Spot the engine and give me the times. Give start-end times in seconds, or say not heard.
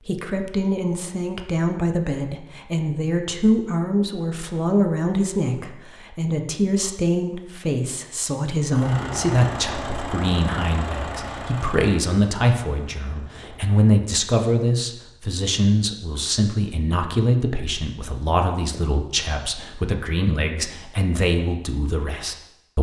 8.7-13.8.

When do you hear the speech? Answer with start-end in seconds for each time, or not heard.
0.1-22.7.